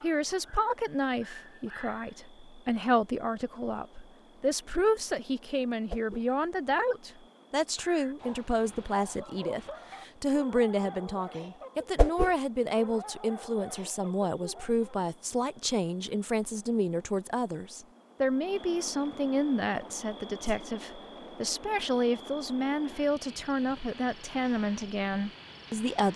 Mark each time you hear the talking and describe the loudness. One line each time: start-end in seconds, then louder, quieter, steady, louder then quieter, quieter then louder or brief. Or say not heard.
0.0-26.1 steady.